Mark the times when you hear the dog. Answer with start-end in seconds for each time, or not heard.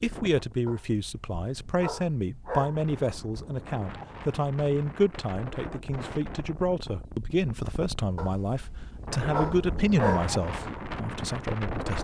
0.7-2.9, 8.2-10.3.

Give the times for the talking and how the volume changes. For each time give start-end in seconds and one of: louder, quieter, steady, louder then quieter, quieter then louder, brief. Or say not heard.
0.0-11.9 steady.